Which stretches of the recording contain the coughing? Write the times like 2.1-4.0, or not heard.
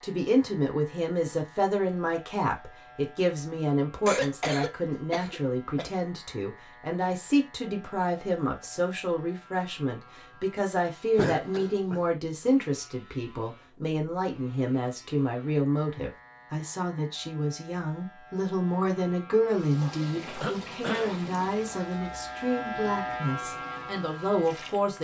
4.0-5.9, 11.2-12.0, 20.4-21.1.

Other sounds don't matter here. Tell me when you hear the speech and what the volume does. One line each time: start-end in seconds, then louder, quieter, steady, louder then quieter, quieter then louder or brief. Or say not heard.
0.0-24.9 steady.